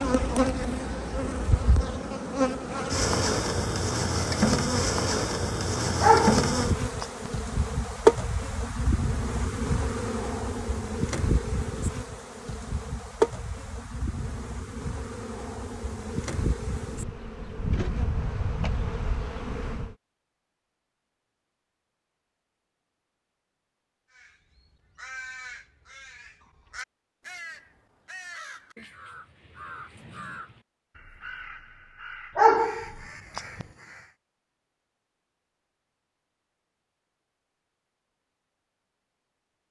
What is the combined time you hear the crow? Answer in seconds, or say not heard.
10 s.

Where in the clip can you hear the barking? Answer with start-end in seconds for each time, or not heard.
6.0-7.0, 32.4-33.6.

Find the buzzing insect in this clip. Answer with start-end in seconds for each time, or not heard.
0.0-19.9.